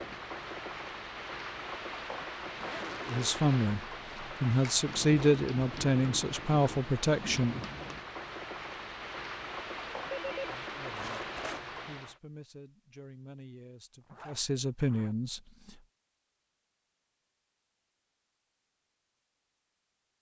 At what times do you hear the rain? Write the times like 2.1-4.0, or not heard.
0.0-12.2.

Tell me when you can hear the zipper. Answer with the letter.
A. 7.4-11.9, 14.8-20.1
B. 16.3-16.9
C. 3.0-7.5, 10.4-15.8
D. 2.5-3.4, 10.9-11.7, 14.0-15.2
D.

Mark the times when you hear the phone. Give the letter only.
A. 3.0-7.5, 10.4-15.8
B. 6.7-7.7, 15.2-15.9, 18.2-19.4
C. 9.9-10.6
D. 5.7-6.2
C.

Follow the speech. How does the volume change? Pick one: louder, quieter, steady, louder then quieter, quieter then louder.
quieter then louder.